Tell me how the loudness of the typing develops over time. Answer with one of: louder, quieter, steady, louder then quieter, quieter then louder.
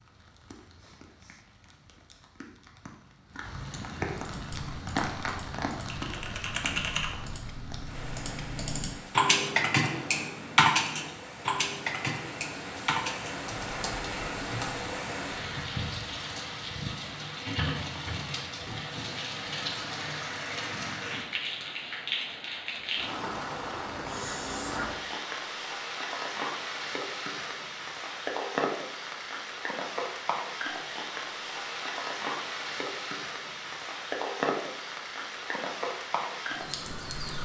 louder then quieter.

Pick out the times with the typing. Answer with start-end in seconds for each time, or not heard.
4.3-15.6.